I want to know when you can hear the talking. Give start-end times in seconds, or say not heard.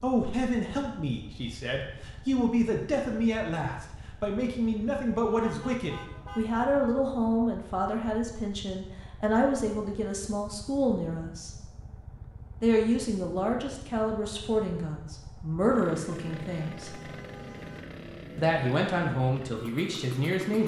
0.0-11.6, 12.6-17.0, 18.4-20.6.